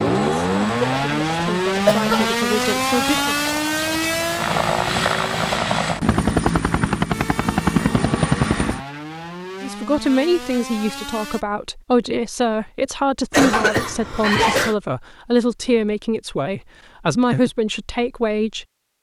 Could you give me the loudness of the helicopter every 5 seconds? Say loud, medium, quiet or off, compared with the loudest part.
medium, loud, off, off.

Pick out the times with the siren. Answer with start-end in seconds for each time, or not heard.
0.0-5.5, 7.1-11.4.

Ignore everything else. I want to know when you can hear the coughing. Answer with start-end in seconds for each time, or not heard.
0.8-2.3, 13.3-14.8.